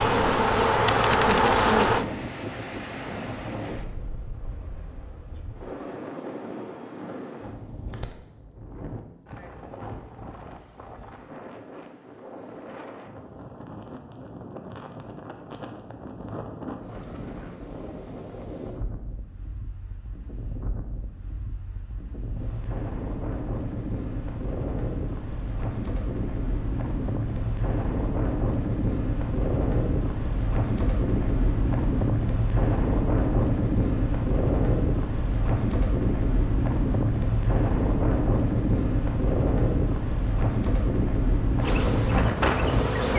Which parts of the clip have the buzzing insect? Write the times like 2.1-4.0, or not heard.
0.0-2.0, 41.6-43.1.